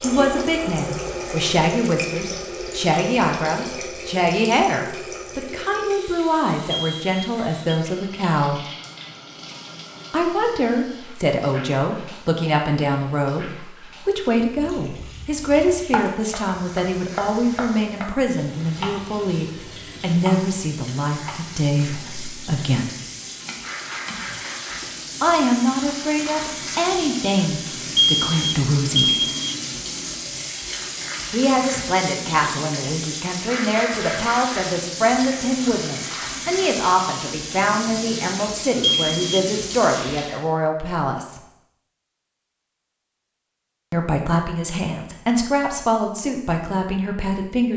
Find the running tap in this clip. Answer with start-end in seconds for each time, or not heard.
0.0-40.5.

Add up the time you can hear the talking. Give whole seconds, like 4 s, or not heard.
39 s.